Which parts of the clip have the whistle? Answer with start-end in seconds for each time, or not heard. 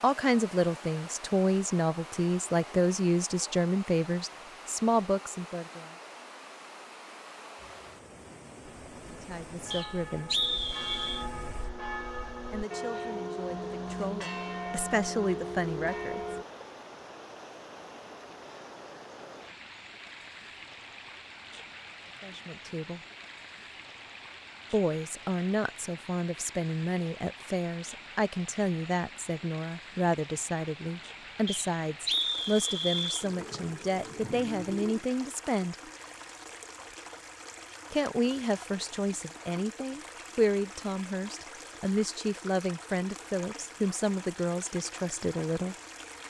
9.7-11.2, 31.4-33.2.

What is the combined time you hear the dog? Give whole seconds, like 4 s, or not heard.
not heard.